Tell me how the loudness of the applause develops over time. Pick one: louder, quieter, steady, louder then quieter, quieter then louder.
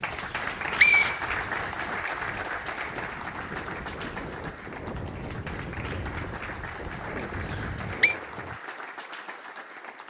quieter.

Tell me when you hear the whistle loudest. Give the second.
1 s.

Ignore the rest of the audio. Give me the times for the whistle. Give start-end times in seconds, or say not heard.
0.2-1.9, 7.4-8.2.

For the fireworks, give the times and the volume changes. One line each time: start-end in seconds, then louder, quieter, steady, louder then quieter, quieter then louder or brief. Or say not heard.
not heard.